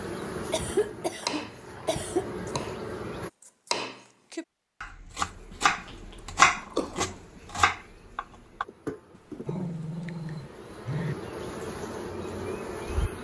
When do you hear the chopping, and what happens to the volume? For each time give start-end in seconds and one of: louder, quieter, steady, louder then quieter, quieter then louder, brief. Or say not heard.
1.2-2.8 brief
3.4-8.7 louder then quieter.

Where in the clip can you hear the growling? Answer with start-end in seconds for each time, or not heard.
0.7-2.0, 5.7-7.2, 9.1-11.2.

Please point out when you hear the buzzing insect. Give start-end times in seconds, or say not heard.
0.0-3.3, 5.2-13.1.